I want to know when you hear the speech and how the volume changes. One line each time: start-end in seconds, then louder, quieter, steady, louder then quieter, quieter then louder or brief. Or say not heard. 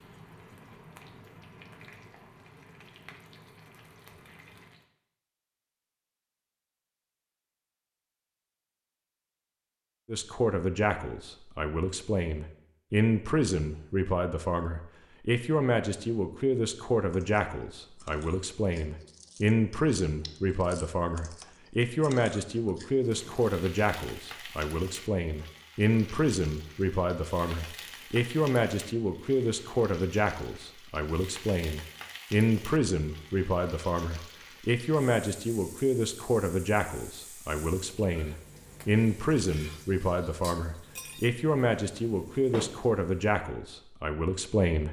10.1-44.8 steady.